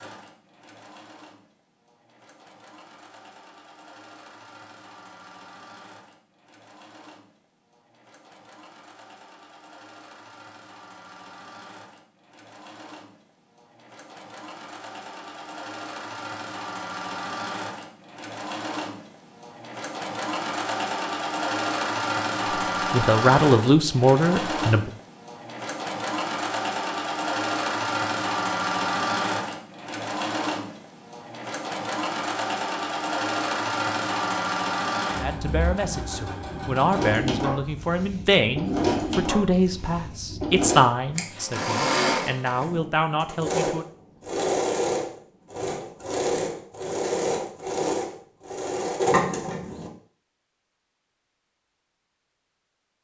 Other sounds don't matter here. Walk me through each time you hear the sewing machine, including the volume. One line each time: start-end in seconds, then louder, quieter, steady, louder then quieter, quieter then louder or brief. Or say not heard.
0.0-49.9 louder.